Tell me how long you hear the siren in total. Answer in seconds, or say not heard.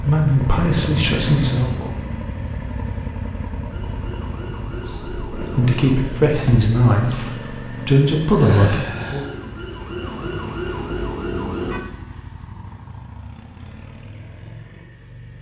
8 s.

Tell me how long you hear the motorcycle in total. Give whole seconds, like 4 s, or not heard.
15 s.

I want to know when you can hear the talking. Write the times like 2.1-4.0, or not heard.
0.0-1.9, 4.7-9.2.